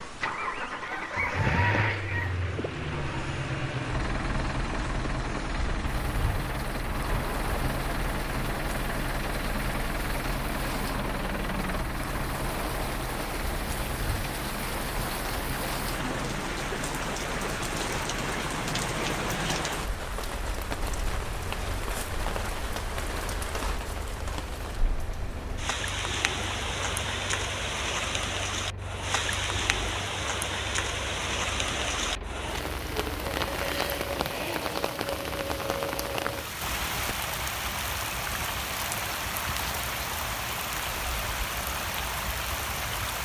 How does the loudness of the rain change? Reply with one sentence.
The loudness of the rain goes up.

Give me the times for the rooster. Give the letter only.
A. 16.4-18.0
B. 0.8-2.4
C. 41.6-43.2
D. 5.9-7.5
B.